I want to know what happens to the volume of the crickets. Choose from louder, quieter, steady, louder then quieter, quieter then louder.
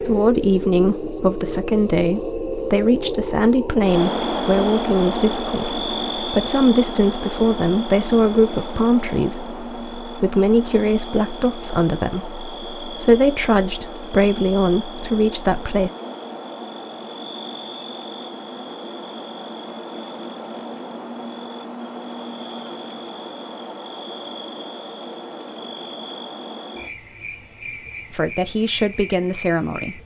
quieter.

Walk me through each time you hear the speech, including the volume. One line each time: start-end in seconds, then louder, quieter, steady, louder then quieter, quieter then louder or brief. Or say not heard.
0.0-15.9 steady
28.1-30.0 brief.